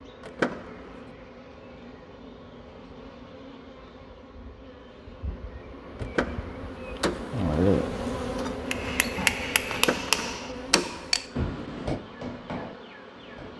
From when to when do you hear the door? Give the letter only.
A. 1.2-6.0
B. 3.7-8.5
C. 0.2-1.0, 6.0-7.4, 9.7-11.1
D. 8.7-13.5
C.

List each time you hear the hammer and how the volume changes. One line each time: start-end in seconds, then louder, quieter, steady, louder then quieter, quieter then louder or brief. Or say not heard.
8.7-13.5 quieter.